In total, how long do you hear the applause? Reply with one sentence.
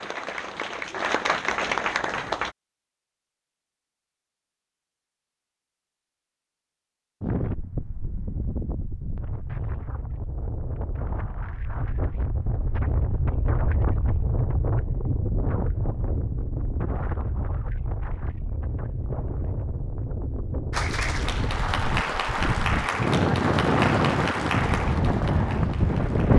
You can hear the applause for 8 seconds altogether.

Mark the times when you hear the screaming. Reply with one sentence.
The screaming can't be heard in this clip.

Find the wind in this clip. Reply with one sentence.
The wind can be heard from 7.2 to 26.3 s.